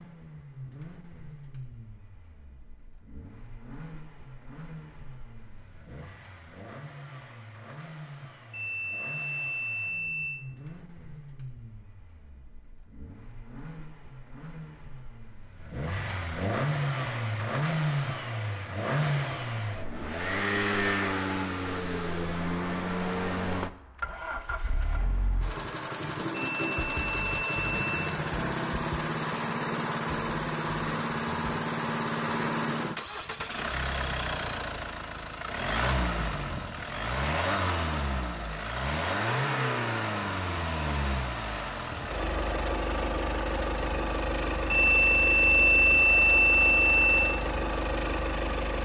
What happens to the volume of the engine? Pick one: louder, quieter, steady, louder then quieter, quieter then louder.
louder.